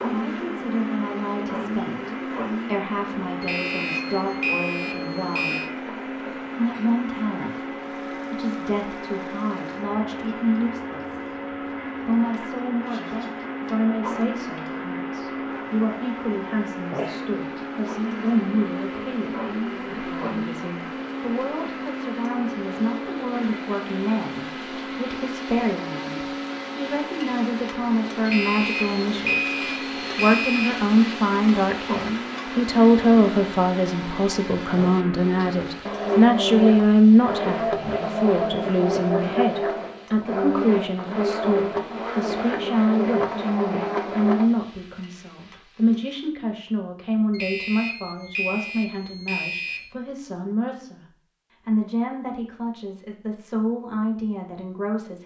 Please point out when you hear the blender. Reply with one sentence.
The blender can be heard from 0.0 to 44.5 s.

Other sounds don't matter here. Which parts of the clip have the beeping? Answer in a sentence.
You can hear the beeping from 3.4 to 5.7 s, from 28.2 to 30.8 s and from 47.3 to 49.9 s.